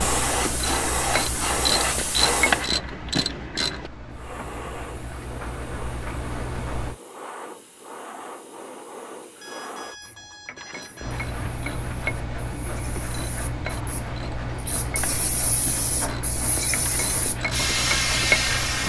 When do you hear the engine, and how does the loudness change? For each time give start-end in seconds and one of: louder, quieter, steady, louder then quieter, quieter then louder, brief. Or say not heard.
0.0-7.0 quieter then louder
11.0-18.8 steady.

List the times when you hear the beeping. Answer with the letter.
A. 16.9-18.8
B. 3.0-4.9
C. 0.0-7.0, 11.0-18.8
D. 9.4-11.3
D.